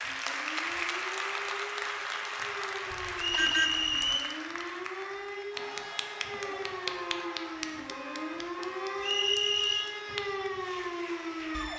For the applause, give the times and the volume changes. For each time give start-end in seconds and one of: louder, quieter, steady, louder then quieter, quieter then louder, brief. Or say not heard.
0.0-11.7 quieter.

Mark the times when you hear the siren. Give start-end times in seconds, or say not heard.
0.0-11.7.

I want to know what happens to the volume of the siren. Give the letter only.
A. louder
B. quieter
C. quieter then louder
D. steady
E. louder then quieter
A.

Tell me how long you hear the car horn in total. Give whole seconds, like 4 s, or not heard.
4 s.